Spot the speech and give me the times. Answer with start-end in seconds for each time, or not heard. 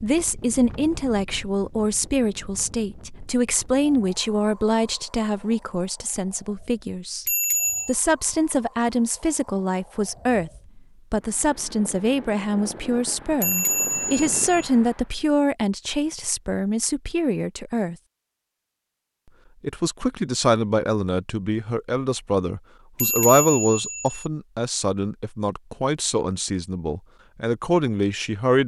0.0-7.2, 7.8-17.9, 19.6-28.6.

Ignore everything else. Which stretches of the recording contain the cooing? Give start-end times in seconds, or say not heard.
not heard.